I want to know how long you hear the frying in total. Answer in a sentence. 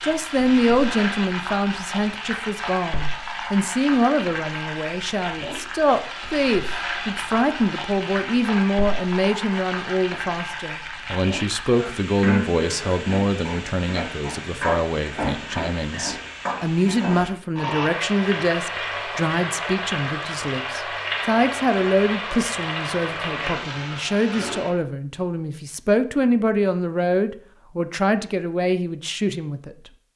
You can hear the frying for 25 seconds altogether.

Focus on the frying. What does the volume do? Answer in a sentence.
The volume of the frying stays about the same.